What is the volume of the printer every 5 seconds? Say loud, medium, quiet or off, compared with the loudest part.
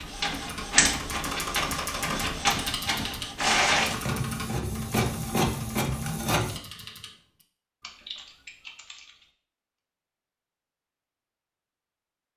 loud, loud, off.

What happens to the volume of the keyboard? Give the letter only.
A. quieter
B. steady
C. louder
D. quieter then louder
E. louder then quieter
A.